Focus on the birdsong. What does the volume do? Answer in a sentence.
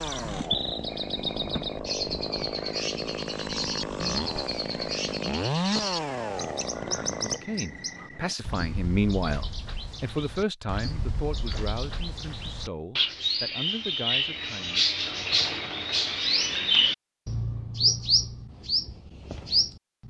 The loudness of the birdsong goes down, then up.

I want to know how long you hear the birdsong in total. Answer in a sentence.
You can hear the birdsong for 20 seconds altogether.